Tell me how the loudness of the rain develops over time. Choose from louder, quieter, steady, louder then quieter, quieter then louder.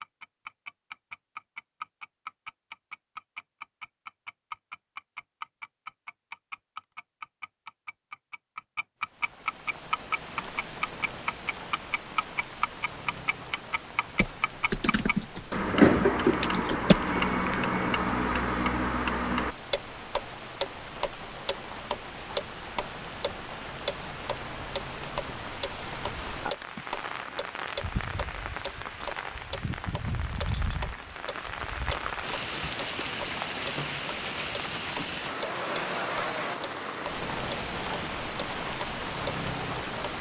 louder.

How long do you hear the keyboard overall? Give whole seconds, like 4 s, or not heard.
3 s.